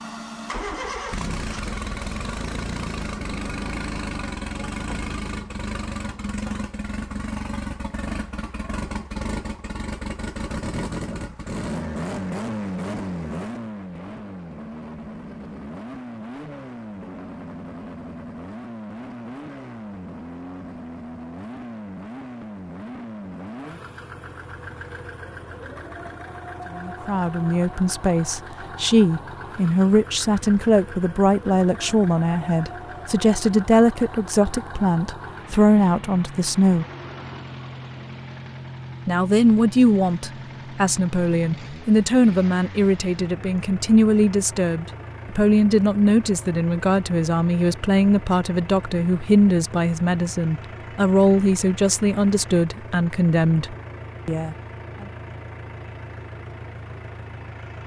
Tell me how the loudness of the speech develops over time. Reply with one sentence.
The loudness of the speech stays about the same.